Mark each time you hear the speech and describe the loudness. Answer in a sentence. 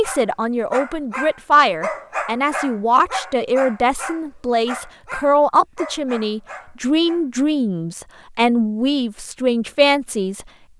You can hear the speech from 0.0 to 10.4 s, at a steady volume.